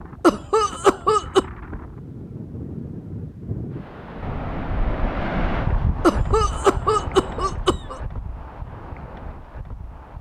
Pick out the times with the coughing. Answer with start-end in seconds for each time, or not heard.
0.2-1.4, 6.0-8.0.